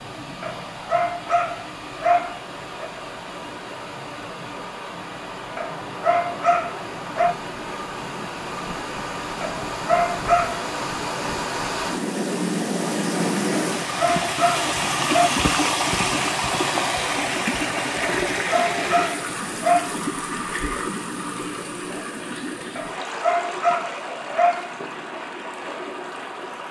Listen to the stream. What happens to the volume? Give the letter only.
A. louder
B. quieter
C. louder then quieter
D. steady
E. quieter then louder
C.